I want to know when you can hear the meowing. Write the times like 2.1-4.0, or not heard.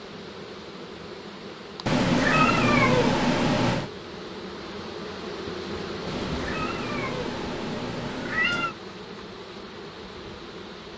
1.9-3.9, 6.0-8.8.